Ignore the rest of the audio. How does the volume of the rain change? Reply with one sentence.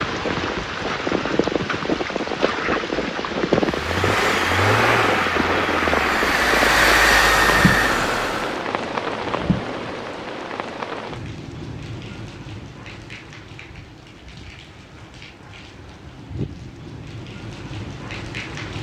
The loudness of the rain goes down.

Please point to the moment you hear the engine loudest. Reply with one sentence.
The volume of the engine peaks at 7 seconds.